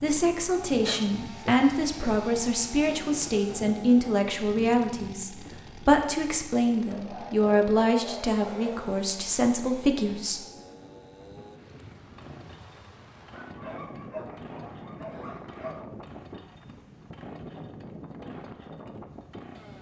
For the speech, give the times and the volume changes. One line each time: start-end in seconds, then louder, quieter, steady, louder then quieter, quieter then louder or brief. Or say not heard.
0.0-10.4 steady.